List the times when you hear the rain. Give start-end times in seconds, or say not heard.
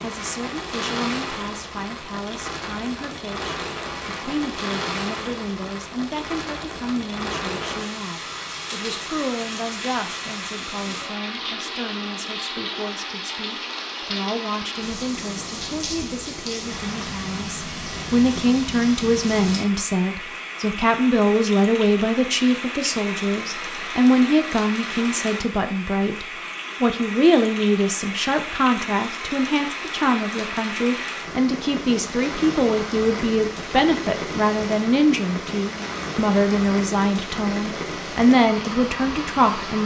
0.0-39.8.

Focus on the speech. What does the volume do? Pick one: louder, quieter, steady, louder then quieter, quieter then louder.
louder.